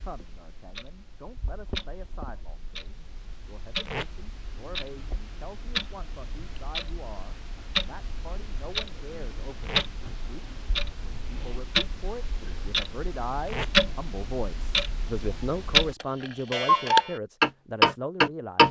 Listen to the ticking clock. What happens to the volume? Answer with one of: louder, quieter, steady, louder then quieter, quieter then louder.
louder.